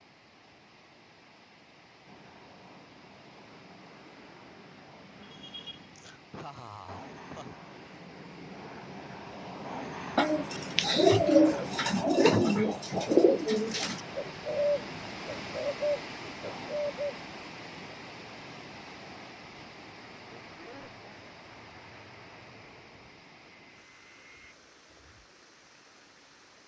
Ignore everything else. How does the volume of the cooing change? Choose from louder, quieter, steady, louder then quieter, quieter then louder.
quieter.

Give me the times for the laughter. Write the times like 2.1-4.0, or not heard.
5.2-7.5, 20.4-21.2.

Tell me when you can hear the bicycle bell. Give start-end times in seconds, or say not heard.
not heard.